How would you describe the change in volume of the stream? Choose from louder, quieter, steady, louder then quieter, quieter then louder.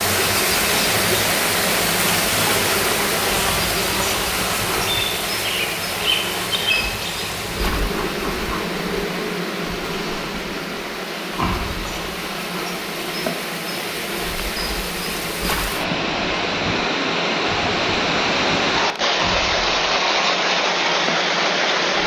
quieter then louder.